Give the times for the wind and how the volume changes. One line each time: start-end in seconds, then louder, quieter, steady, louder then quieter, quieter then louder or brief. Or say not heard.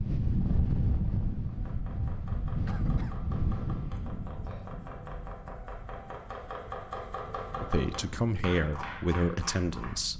0.0-10.1 quieter.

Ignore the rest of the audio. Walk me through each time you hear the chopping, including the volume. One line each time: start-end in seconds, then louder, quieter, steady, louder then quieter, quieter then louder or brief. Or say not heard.
1.4-10.1 louder.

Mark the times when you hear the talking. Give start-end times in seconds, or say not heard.
7.6-10.1.